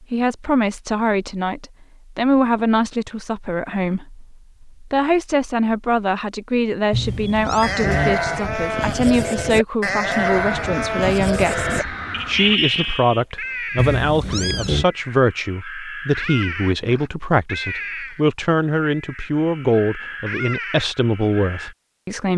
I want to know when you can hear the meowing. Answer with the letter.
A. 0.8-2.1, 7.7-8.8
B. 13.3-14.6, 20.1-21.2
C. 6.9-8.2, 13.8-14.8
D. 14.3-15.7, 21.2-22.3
C.